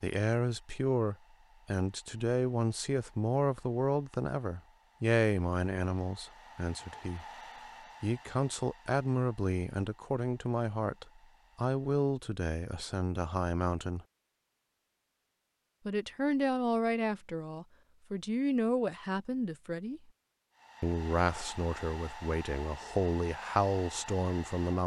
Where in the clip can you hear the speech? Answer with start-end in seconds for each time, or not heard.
0.0-7.2, 8.0-14.1, 15.8-20.0, 20.8-24.8.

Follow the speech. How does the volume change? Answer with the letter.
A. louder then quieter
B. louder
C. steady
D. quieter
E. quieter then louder
C.